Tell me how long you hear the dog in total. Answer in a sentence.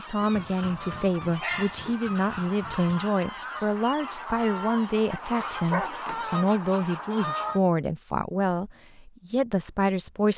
You can hear the dog for 4 seconds altogether.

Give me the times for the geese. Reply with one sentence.
The geese can be heard from 0.0 to 7.6 s.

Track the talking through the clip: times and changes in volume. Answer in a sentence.
The talking can be heard from 0.0 to 10.3 s, at a steady volume.